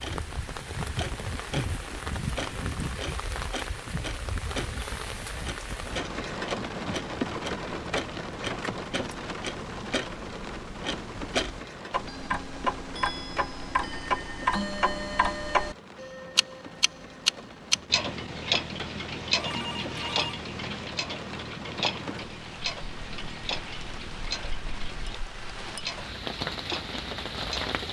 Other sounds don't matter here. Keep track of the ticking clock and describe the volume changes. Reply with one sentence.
The loudness of the ticking clock goes up, then down.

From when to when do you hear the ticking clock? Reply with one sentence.
The ticking clock can be heard from 0.0 to 27.8 s.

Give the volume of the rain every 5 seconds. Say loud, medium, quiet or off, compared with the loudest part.
loud, loud, medium, medium, medium, loud.